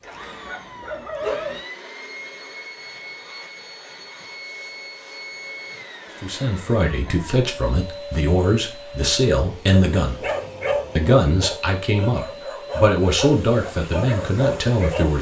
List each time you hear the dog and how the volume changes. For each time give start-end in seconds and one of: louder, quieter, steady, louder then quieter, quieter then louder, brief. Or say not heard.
0.0-1.6 brief
9.6-15.1 quieter then louder.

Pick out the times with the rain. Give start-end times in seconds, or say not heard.
not heard.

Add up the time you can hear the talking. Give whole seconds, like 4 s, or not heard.
8 s.